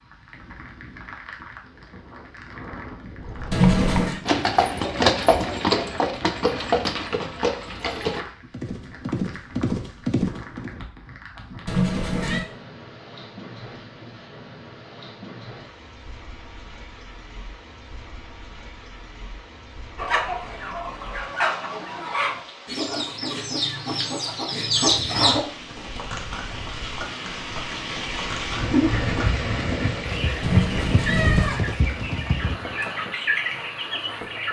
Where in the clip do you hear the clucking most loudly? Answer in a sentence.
The loudest moment of the clucking is at 25 seconds.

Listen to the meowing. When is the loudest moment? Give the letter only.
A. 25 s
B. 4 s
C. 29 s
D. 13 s
B.